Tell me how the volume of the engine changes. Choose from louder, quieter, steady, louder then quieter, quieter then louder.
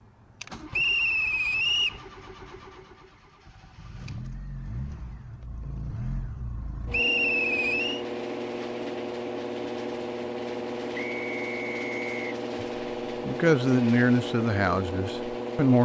louder.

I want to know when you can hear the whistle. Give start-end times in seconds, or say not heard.
0.7-2.0, 6.9-8.1, 10.9-12.3.